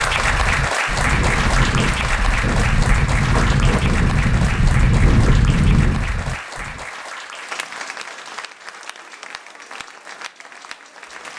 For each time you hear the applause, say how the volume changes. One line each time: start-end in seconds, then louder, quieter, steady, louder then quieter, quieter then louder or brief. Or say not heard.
0.0-11.3 quieter.